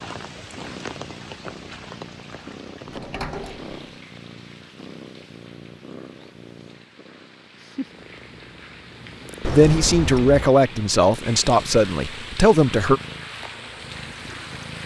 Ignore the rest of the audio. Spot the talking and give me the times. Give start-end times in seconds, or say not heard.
9.5-13.0.